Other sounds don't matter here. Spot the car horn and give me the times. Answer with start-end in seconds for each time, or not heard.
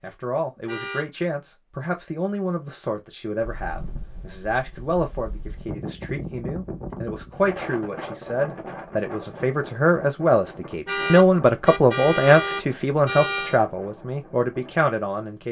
0.7-1.1, 10.8-13.6.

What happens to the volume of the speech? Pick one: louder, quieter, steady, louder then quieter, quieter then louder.
louder.